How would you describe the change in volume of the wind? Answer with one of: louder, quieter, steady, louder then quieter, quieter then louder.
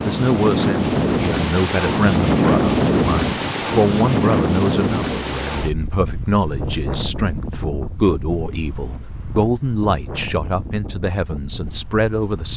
quieter.